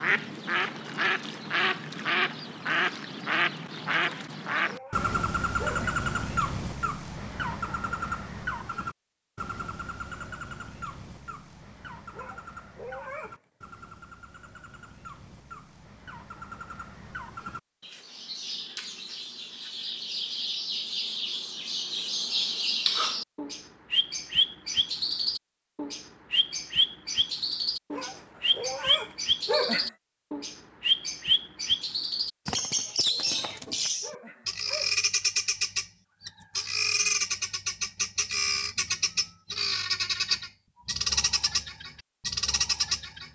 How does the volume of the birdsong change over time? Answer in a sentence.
The volume of the birdsong goes down, then up.